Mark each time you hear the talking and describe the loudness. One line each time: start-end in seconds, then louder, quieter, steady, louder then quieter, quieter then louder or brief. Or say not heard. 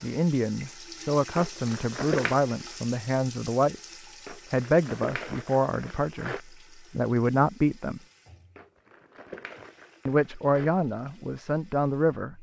0.0-8.0 steady
10.1-12.3 brief.